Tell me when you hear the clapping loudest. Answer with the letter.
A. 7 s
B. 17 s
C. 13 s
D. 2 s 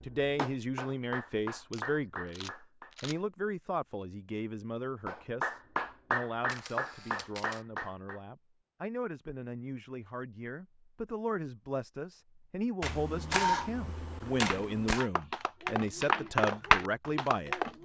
B.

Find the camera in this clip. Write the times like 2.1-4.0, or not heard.
1.7-3.2, 6.5-7.7, 12.8-15.1.